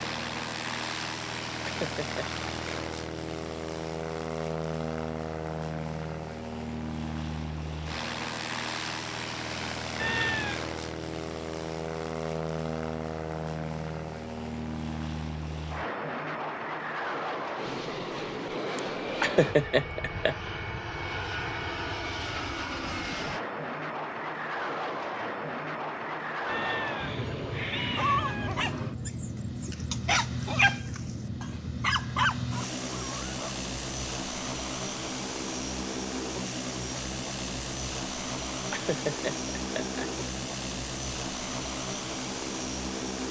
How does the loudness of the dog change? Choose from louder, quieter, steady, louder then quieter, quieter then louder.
louder.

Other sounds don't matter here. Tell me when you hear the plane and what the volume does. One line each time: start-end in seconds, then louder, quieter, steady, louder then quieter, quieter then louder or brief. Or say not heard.
0.0-43.2 steady.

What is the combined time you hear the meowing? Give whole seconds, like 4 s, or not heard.
3 s.